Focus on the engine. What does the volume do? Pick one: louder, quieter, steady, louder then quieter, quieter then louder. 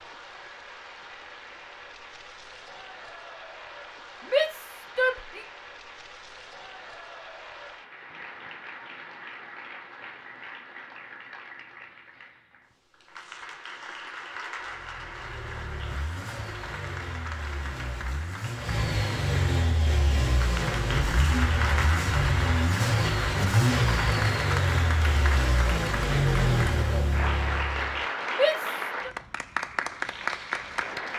louder.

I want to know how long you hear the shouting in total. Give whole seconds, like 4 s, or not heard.
2 s.